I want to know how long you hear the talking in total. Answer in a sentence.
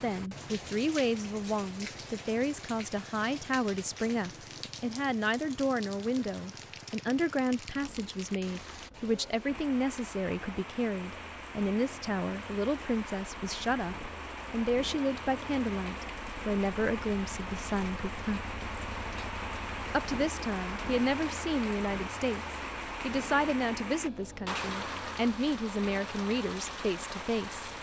The talking can be heard for 26 seconds in total.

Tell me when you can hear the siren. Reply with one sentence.
The siren can't be heard in this clip.